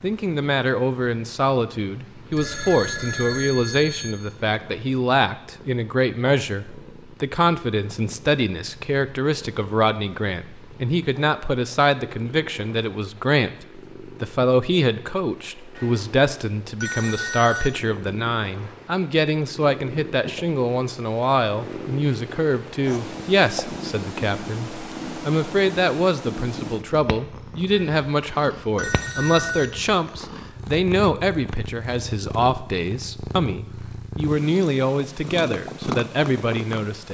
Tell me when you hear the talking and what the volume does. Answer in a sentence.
The talking can be heard from 0.0 to 37.0 s, at a steady volume.